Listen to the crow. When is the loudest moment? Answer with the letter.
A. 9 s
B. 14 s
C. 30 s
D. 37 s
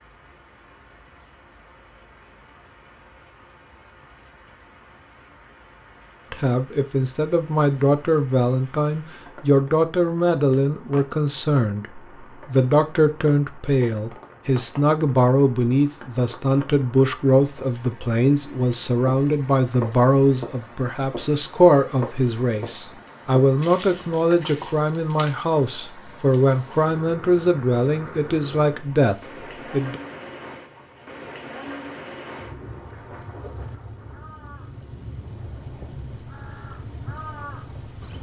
D.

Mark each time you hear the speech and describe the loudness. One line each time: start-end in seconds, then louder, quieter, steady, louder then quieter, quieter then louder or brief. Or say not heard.
6.3-30.0 steady.